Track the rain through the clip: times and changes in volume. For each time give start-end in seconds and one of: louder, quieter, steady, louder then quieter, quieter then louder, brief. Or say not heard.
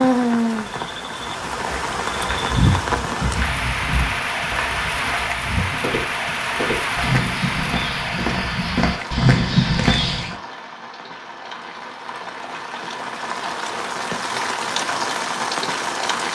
0.0-16.3 quieter then louder.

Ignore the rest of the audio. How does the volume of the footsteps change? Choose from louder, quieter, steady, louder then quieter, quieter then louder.
quieter then louder.